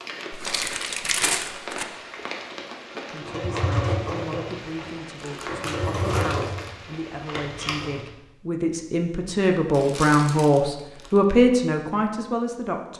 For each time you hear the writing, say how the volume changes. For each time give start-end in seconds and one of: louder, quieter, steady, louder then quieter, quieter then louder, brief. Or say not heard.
not heard.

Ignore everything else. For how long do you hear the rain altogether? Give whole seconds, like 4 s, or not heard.
8 s.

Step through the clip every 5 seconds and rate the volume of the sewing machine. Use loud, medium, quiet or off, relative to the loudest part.
loud, loud, off.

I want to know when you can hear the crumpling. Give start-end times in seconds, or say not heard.
0.3-1.9, 5.2-6.8, 9.7-11.2.